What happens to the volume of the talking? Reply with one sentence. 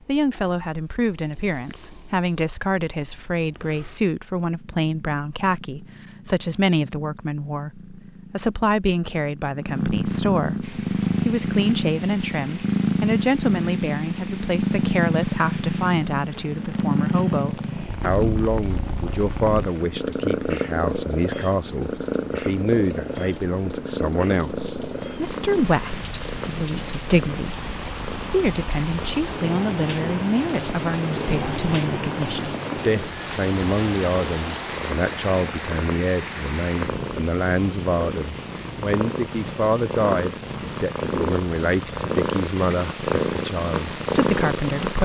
The volume of the talking stays about the same.